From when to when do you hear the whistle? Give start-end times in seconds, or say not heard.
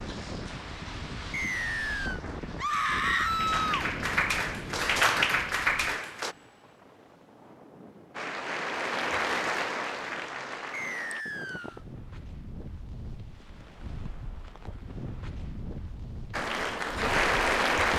1.3-2.2, 10.7-11.8.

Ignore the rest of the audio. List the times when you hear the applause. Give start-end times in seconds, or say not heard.
0.0-6.3, 8.2-11.2, 16.3-17.9.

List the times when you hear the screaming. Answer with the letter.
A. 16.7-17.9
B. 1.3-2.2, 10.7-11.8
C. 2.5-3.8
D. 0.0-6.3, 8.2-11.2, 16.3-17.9
C.